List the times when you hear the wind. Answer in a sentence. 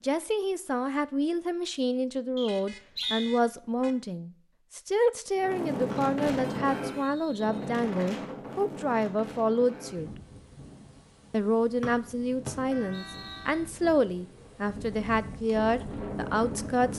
The wind can be heard from 5.3 to 16.9 s.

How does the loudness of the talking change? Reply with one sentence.
The loudness of the talking stays about the same.